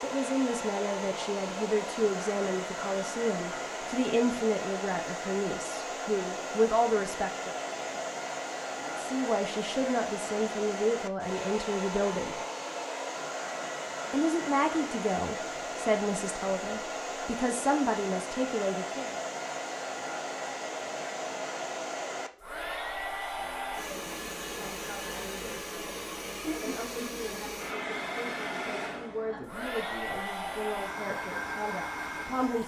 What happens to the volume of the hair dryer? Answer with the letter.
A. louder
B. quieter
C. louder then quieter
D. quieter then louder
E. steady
E.